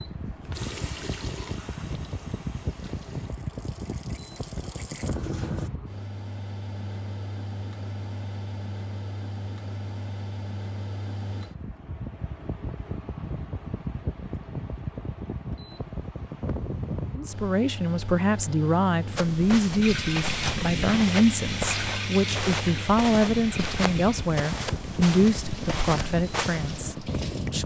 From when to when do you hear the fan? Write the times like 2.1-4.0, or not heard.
0.0-27.6.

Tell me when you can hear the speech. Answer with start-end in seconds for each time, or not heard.
17.1-27.6.